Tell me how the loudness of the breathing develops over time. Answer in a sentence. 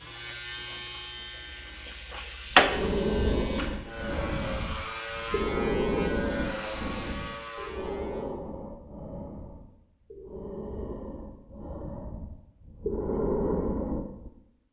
The volume of the breathing goes down, then up.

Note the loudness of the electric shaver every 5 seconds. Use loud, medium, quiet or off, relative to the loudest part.
loud, loud, off.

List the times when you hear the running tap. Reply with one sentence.
The running tap can be heard from 0.0 to 3.8 s.